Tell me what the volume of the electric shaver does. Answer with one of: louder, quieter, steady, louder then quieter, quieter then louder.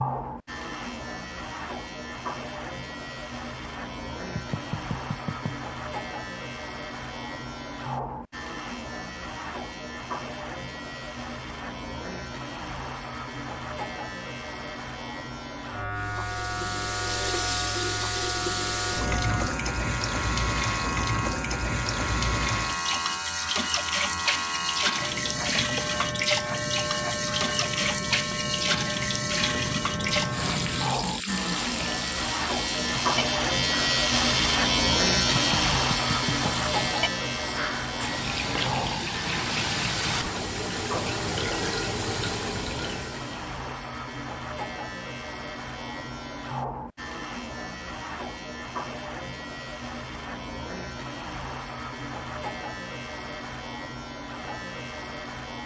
louder then quieter.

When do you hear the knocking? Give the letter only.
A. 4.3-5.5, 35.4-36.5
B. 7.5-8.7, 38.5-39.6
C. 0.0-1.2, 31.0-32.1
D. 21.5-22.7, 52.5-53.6
A.